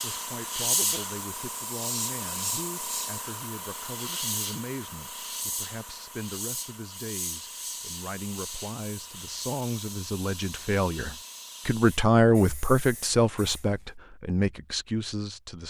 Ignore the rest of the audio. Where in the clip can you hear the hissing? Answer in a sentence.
You can hear the hissing from 0.0 to 13.9 s.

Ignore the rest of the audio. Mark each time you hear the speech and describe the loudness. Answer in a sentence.
The speech can be heard from 0.0 to 15.6 s, getting louder.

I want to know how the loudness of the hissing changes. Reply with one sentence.
The volume of the hissing goes down.